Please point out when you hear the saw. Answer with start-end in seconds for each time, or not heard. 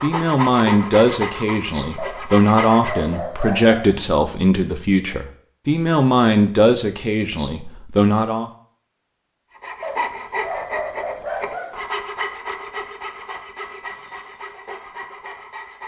0.0-3.2, 9.6-15.8.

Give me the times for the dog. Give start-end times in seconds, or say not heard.
1.9-4.0, 9.8-11.8.